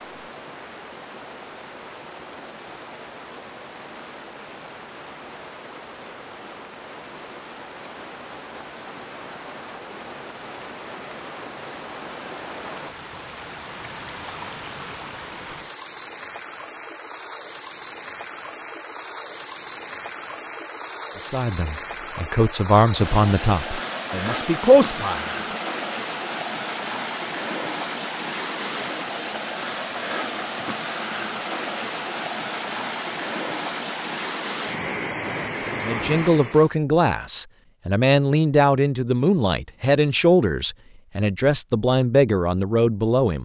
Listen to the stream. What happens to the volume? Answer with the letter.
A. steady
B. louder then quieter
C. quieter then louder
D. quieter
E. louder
E.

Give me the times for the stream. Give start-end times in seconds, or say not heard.
0.0-36.7.